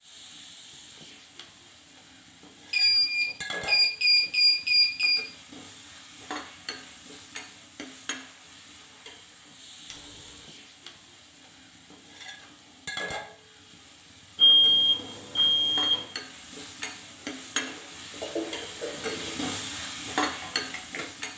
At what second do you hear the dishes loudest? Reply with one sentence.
The volume of the dishes peaks at 18 seconds.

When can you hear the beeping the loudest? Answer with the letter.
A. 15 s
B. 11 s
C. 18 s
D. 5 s
A.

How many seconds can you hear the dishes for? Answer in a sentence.
You can hear the dishes for 3 seconds altogether.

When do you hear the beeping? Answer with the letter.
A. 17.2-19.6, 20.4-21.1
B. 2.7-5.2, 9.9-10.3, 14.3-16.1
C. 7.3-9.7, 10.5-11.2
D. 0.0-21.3
B.